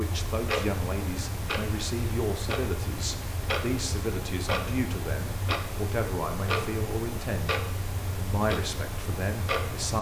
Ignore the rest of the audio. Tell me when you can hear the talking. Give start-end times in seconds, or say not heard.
0.0-7.5, 8.2-9.9.